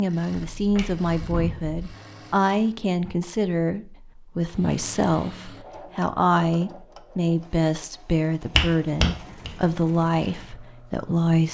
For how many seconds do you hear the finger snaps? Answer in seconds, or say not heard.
2 s.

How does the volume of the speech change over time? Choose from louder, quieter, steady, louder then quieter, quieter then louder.
steady.